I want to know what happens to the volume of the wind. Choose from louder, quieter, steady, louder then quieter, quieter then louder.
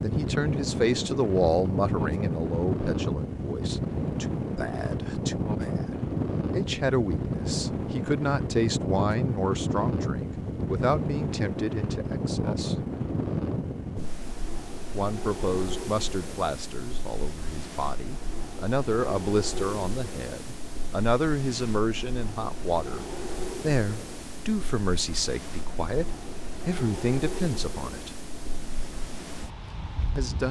quieter.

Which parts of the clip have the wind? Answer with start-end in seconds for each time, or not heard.
0.0-30.4.